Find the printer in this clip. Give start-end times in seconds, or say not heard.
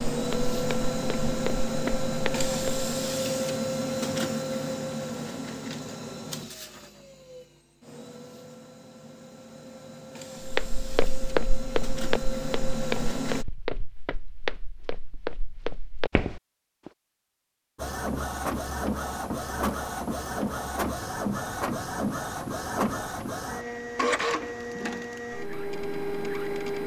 0.0-13.4, 17.8-26.8.